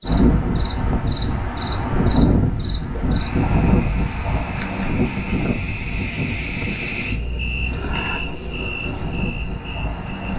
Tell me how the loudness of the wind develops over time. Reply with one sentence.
The volume of the wind goes down.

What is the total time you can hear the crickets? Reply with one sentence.
You can hear the crickets for 10 seconds altogether.